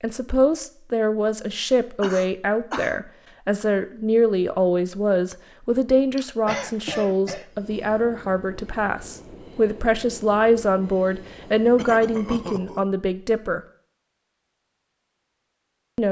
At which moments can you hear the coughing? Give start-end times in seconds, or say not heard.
2.0-3.0, 6.2-7.5, 11.8-12.8.